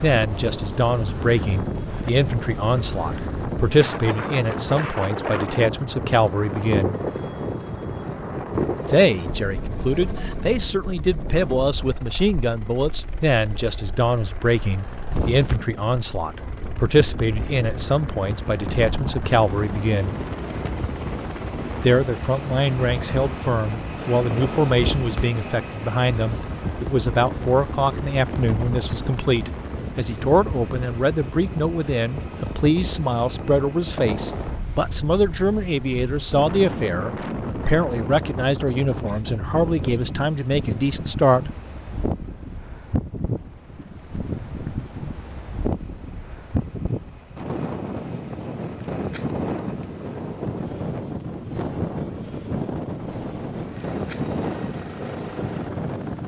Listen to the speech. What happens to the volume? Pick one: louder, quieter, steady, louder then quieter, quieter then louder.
steady.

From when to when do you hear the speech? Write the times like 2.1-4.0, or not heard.
0.0-7.0, 8.8-20.2, 21.8-41.5.